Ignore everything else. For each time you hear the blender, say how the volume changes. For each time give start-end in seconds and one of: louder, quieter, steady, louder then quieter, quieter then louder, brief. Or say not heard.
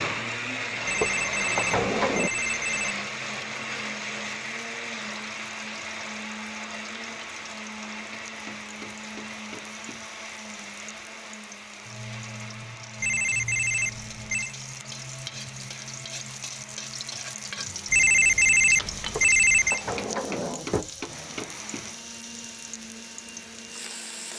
0.0-24.3 quieter.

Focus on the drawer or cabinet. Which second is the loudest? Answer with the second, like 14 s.
2 s.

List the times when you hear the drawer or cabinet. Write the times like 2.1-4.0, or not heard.
1.0-2.3, 19.1-20.9.